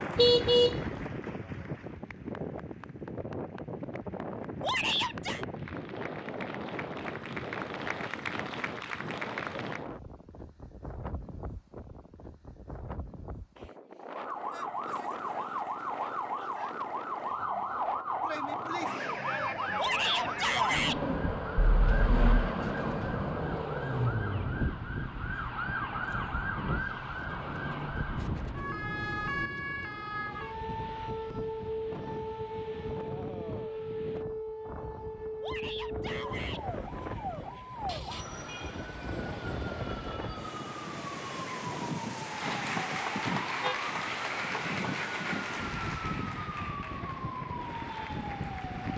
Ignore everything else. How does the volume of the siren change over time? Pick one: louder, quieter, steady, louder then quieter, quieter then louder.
quieter.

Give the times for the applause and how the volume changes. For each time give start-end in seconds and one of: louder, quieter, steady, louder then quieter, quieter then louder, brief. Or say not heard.
0.0-9.9 quieter then louder
42.2-48.9 quieter.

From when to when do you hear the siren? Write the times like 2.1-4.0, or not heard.
14.1-48.9.